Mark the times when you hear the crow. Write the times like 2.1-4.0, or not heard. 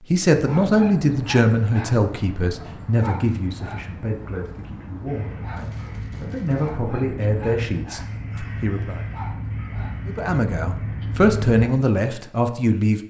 5.0-11.7.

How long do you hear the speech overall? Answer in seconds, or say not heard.
12 s.